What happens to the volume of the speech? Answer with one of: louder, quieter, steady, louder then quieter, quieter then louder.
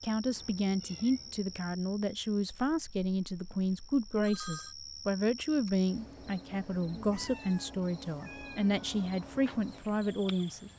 steady.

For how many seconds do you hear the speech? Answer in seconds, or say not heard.
11 s.